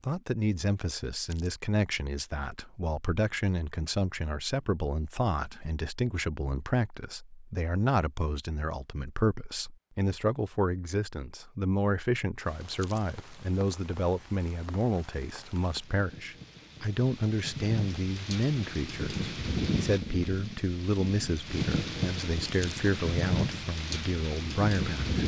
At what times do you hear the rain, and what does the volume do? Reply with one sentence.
The rain can be heard from 12.4 to 25.2 s, getting louder.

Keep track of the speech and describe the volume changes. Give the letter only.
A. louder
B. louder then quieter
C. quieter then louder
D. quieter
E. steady
E.